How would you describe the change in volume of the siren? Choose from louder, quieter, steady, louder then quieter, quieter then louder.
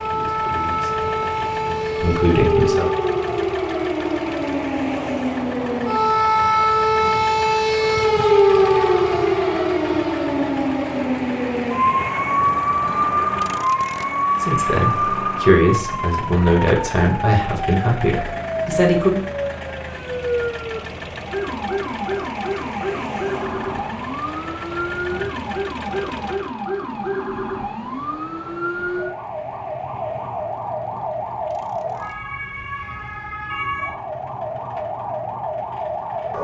quieter.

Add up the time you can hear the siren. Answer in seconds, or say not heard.
36 s.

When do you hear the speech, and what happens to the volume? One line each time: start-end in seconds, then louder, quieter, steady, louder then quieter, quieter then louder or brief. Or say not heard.
0.0-2.9 brief
14.4-19.2 steady.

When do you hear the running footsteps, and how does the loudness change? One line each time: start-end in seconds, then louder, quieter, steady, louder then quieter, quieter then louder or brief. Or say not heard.
not heard.